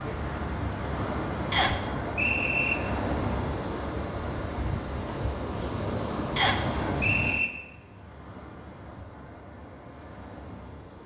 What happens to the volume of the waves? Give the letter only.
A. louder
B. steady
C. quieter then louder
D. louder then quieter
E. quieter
E.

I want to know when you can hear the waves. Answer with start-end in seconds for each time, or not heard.
0.0-11.0.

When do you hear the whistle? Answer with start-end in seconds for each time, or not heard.
1.5-2.8, 6.3-7.5.